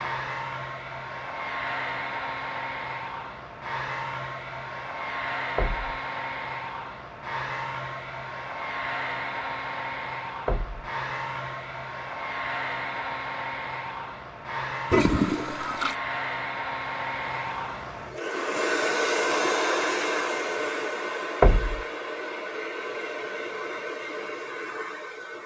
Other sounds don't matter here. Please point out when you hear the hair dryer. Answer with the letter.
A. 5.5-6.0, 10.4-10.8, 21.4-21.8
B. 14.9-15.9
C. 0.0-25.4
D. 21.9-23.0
C.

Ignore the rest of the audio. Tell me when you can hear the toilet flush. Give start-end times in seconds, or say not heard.
14.9-15.9.